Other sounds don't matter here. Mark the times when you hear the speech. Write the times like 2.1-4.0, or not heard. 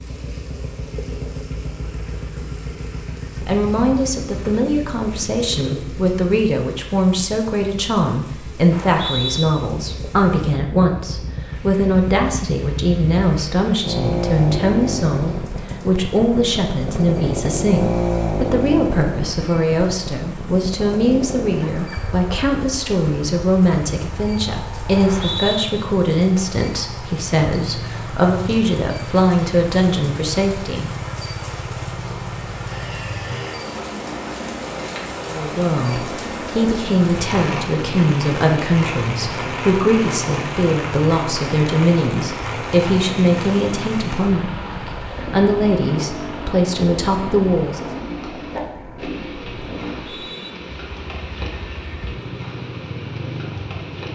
3.4-30.9, 35.3-47.9.